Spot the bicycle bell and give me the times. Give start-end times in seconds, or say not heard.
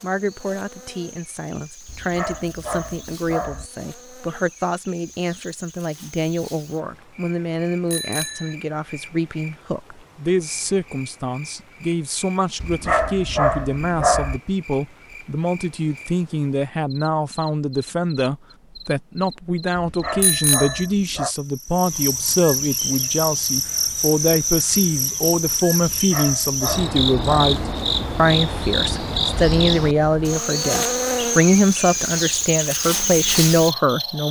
7.9-8.6, 20.2-20.9.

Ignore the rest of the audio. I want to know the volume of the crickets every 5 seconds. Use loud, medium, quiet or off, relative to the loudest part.
quiet, quiet, quiet, quiet, loud, loud, loud.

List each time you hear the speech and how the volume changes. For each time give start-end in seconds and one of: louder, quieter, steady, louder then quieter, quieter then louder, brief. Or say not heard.
0.0-34.2 louder.